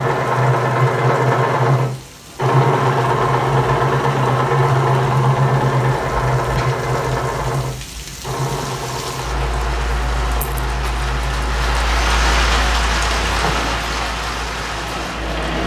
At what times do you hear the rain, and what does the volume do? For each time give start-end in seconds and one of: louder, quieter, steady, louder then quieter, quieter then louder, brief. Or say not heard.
0.0-15.6 louder.